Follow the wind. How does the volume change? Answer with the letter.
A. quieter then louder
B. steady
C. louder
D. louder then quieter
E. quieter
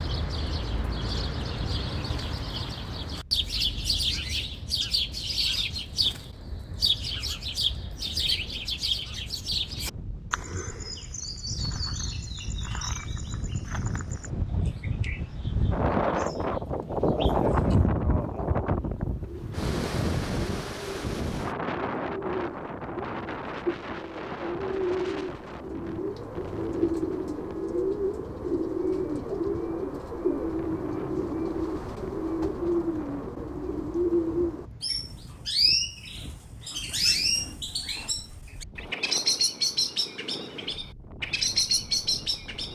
D.